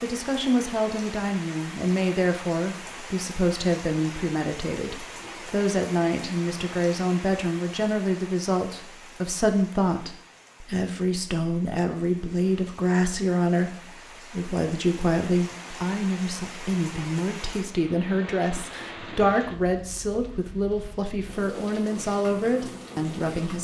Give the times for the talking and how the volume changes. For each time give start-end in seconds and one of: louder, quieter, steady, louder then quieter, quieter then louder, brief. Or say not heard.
0.0-23.5 steady.